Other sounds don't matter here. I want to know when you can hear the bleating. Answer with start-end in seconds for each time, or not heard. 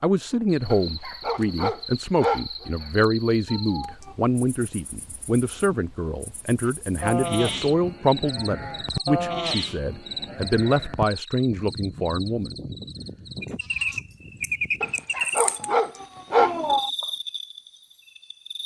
6.7-15.1.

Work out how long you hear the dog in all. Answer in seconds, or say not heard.
4 s.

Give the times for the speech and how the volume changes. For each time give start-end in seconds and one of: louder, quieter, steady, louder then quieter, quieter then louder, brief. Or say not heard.
0.0-12.6 steady.